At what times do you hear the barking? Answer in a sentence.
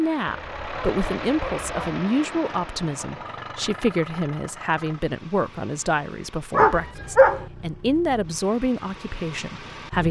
The barking can be heard from 0.2 to 2.0 s and from 6.5 to 7.5 s.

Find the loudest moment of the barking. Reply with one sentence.
The volume of the barking peaks at 7 seconds.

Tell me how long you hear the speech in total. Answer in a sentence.
You can hear the speech for 10 seconds altogether.